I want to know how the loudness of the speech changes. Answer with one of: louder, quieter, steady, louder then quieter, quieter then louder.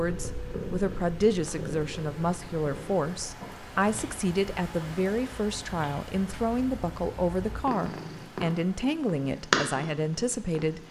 steady.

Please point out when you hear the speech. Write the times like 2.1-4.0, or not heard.
0.0-10.8.